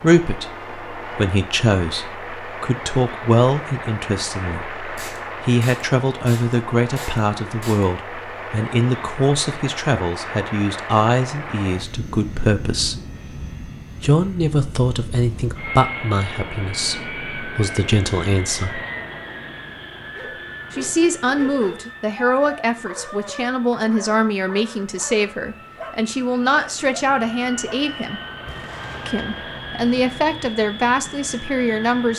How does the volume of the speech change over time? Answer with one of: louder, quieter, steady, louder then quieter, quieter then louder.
steady.